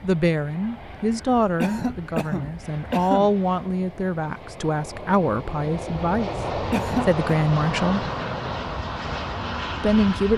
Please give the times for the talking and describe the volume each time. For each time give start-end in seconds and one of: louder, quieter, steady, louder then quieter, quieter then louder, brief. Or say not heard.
0.0-8.1 steady
9.8-10.3 brief.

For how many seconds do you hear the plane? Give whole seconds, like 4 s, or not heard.
10 s.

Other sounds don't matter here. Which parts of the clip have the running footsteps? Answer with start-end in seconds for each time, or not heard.
not heard.